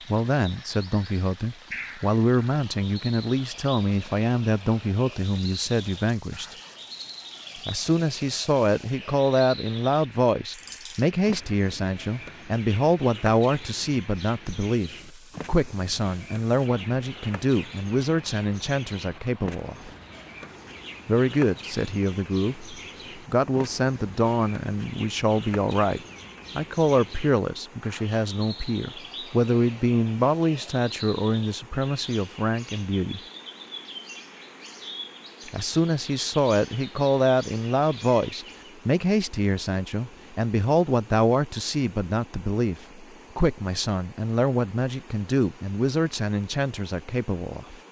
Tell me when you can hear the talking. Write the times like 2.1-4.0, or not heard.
0.1-6.5, 7.7-19.9, 21.1-33.2, 35.5-47.8.